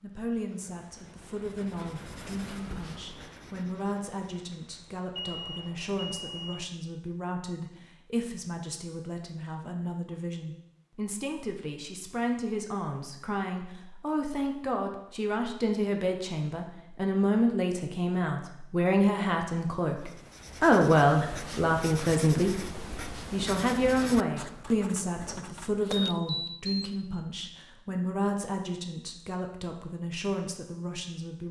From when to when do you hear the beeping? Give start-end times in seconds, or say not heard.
5.2-6.7, 25.9-26.9.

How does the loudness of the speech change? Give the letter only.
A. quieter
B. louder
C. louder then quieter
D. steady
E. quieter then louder
C.